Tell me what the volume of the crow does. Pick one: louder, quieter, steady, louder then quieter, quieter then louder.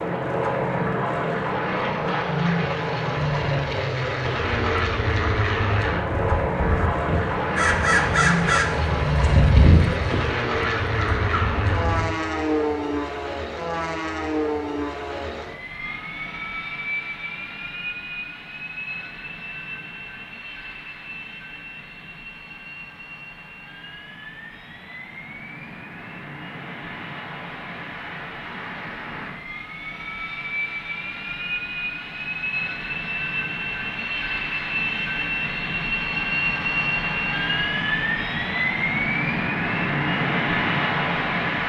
louder then quieter.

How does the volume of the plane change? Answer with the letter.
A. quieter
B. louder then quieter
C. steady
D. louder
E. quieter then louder
E.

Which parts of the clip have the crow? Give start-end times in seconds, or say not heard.
3.4-12.1.